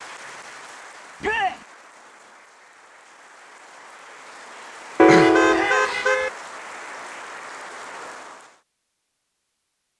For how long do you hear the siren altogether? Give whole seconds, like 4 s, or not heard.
not heard.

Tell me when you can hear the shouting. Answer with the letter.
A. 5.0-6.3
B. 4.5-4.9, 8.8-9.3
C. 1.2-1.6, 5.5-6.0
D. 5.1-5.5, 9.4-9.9
C.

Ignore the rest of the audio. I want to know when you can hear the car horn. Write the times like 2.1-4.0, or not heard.
5.0-6.3.